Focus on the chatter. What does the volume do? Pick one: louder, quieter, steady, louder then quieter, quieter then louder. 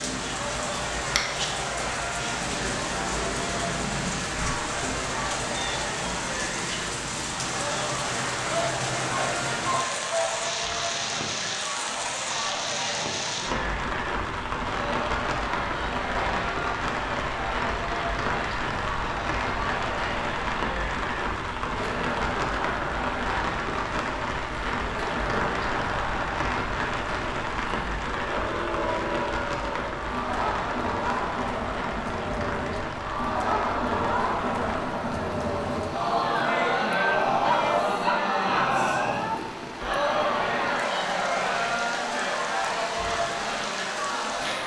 louder.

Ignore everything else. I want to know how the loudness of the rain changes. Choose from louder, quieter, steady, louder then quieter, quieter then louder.
quieter.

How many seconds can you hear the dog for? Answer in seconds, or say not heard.
3 s.